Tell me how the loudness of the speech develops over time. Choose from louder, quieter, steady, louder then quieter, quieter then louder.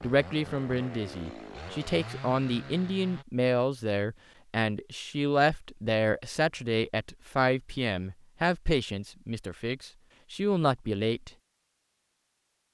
steady.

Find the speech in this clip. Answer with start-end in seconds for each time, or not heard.
0.0-11.3.